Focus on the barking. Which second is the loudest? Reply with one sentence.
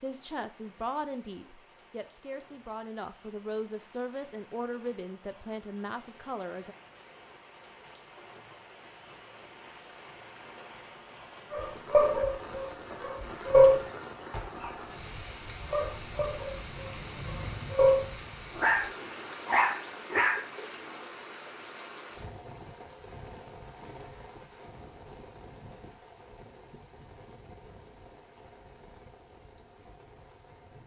The volume of the barking peaks at 14 seconds.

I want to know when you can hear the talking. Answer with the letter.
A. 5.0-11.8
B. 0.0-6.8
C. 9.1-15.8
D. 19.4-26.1
B.